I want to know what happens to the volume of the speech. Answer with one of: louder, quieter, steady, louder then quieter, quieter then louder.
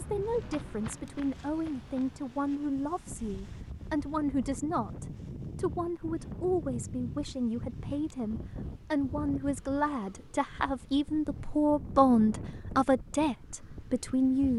louder.